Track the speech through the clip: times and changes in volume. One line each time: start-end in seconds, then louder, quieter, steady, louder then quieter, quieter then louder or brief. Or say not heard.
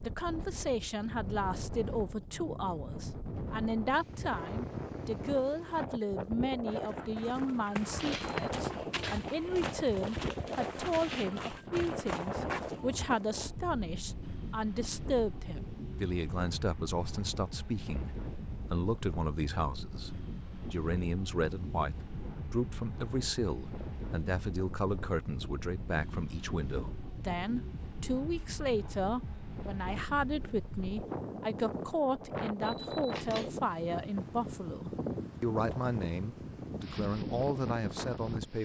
0.0-38.5 steady.